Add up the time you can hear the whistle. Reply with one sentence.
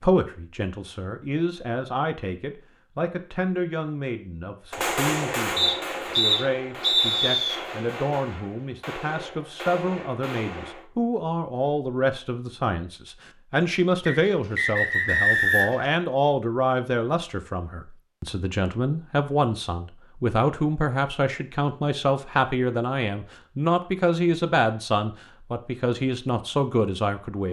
You can hear the whistle for 4 seconds altogether.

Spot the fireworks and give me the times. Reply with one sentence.
You can hear the fireworks from 4.7 to 10.8 s.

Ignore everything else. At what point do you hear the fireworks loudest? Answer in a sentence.
The loudest moment of the fireworks is at 5 seconds.